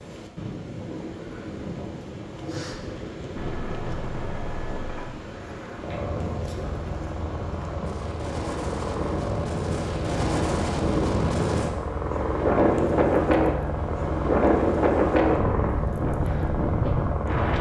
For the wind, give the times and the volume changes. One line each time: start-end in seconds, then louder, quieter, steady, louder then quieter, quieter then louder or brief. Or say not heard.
0.0-17.5 louder.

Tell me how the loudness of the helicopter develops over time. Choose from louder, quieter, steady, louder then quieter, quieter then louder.
louder.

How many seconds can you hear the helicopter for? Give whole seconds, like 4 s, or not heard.
14 s.